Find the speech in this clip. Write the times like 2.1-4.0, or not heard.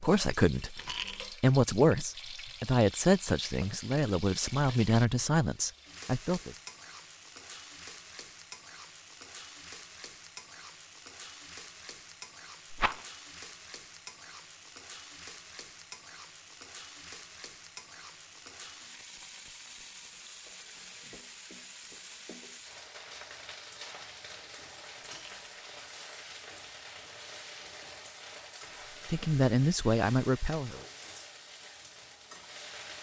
0.0-0.8, 1.4-6.5, 29.1-30.8.